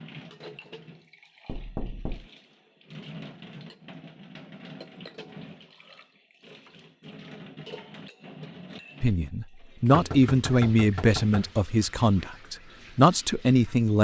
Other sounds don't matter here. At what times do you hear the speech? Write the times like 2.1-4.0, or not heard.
9.0-13.9.